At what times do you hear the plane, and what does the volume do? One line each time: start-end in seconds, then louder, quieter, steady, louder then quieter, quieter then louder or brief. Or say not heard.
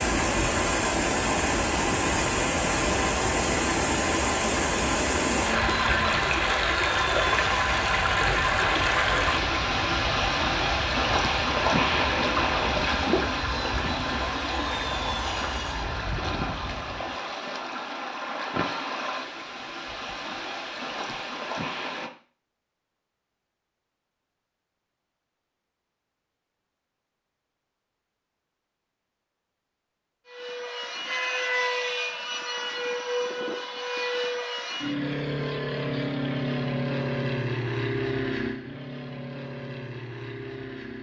0.0-17.1 steady
30.2-40.9 quieter.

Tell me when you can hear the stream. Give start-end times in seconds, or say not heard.
0.0-22.1.